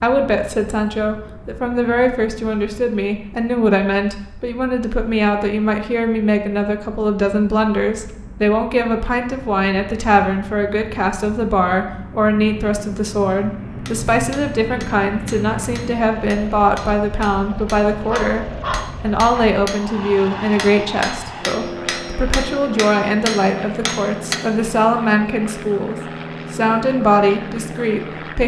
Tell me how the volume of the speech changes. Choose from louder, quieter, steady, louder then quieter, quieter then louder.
steady.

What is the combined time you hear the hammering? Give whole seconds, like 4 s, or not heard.
10 s.